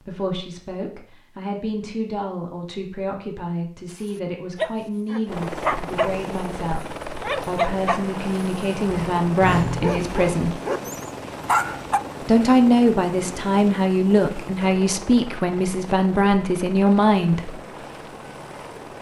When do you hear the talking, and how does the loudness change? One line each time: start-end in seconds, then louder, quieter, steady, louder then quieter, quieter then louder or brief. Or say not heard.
0.0-10.6 louder
12.2-17.6 steady.